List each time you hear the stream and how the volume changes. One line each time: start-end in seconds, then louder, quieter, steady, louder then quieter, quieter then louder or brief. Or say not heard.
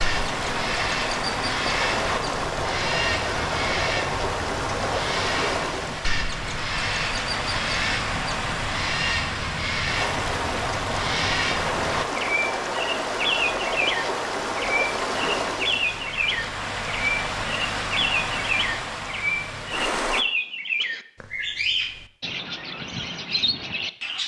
0.0-20.2 steady.